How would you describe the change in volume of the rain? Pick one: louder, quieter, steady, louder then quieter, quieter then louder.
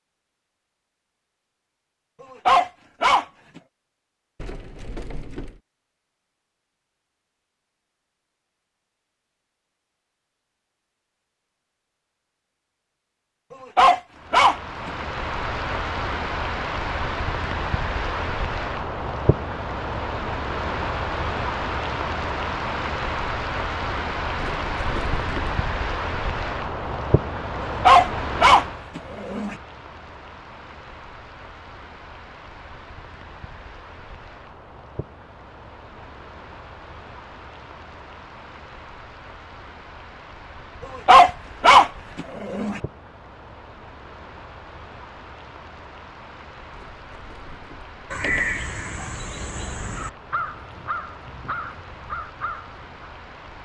quieter.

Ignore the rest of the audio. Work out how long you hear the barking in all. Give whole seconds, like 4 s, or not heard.
6 s.